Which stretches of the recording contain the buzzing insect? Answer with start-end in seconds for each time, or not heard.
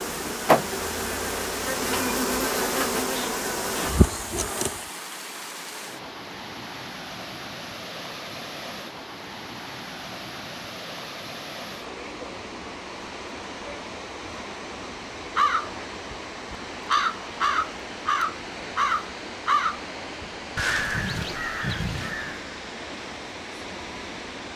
0.0-4.9.